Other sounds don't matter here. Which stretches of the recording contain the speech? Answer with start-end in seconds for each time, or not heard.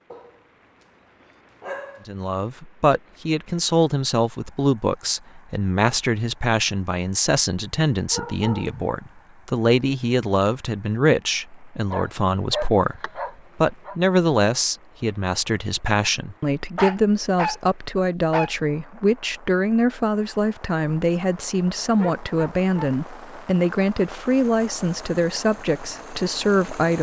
2.0-26.9.